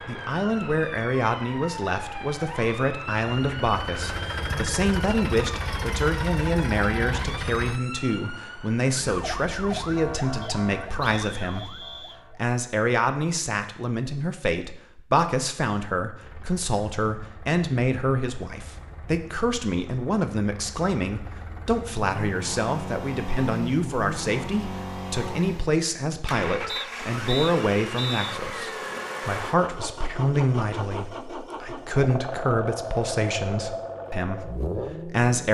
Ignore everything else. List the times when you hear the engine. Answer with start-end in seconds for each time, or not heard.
0.0-7.8, 16.2-35.4.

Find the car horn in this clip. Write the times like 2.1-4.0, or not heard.
not heard.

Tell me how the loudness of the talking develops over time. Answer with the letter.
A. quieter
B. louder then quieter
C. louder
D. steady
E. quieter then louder
D.